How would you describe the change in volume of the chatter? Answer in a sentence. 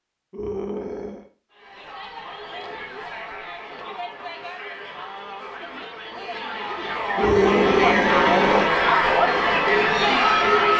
The loudness of the chatter goes up.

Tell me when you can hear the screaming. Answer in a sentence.
You can hear the screaming from 0.3 to 1.3 s and from 7.2 to 8.7 s.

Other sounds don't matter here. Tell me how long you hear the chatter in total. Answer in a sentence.
You can hear the chatter for 9 seconds altogether.